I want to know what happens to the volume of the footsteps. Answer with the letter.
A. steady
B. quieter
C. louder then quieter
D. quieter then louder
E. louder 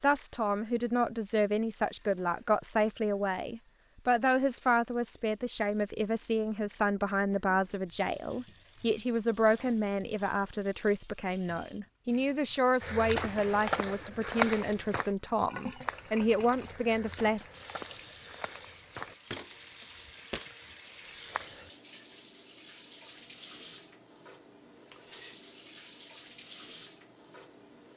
B.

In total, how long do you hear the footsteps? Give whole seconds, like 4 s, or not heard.
9 s.